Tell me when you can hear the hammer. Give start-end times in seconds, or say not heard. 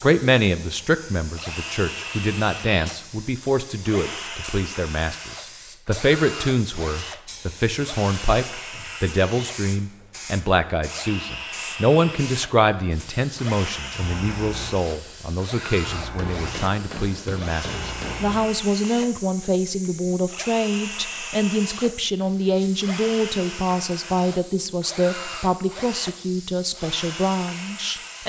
16.1-18.2.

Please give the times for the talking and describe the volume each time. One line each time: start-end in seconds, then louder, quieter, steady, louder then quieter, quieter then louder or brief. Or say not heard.
0.0-28.2 steady.